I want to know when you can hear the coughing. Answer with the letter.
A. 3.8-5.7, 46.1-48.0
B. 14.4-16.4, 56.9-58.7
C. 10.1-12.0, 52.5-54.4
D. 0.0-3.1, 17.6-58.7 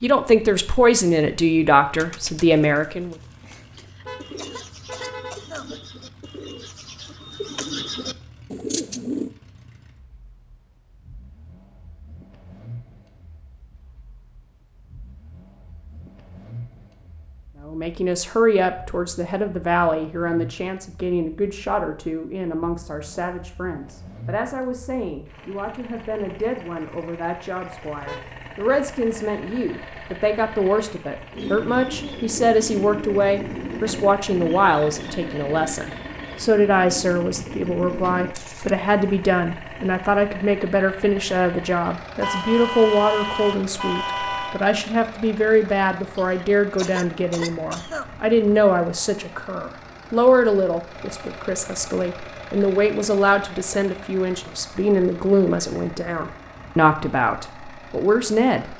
A.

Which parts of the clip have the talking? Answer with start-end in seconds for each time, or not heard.
0.0-3.1, 17.6-58.7.